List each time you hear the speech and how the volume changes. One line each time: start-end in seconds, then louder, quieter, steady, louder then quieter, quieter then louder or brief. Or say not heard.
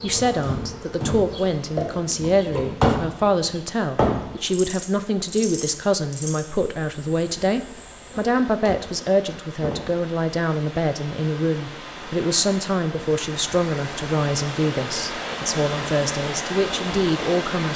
0.0-17.7 steady.